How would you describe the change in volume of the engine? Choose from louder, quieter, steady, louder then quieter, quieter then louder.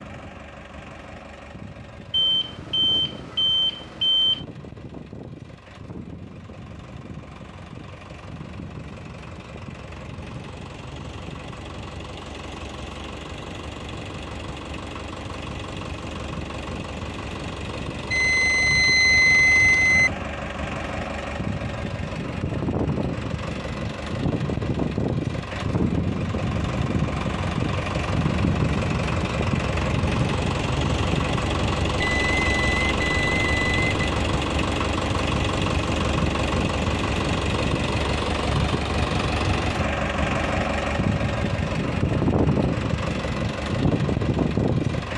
louder.